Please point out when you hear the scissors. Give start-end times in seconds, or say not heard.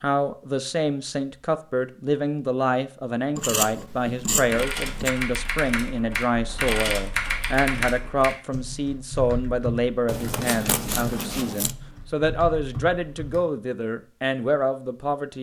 3.4-5.1, 10.1-11.8.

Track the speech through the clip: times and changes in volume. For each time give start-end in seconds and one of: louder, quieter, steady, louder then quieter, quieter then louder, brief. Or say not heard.
0.0-15.3 steady.